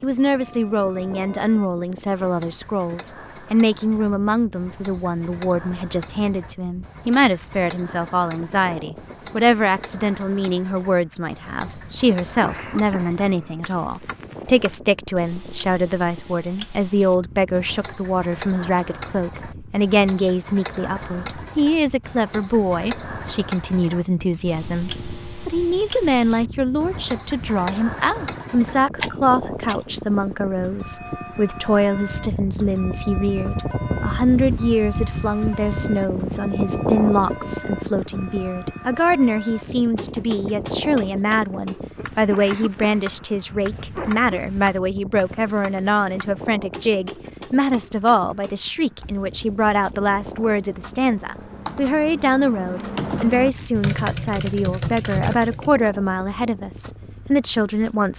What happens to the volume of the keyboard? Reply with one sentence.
The volume of the keyboard goes up.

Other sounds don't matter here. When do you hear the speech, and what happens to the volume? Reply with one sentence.
The speech can be heard from 0.0 to 58.1 s, at a steady volume.